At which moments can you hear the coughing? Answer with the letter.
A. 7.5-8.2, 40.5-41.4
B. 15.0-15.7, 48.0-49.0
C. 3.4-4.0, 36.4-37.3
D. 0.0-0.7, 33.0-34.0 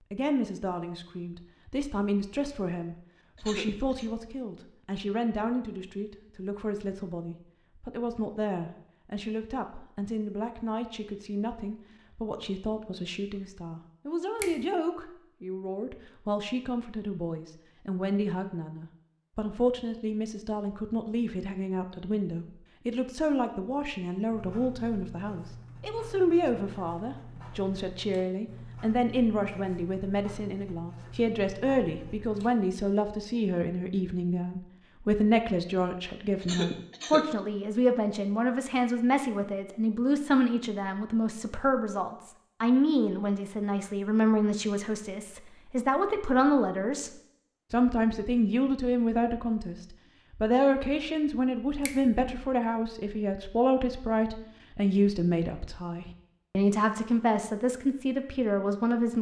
C.